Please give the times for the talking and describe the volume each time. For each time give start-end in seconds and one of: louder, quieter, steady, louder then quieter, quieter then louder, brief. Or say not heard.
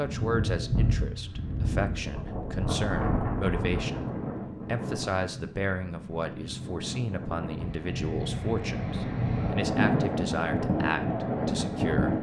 0.0-12.1 steady.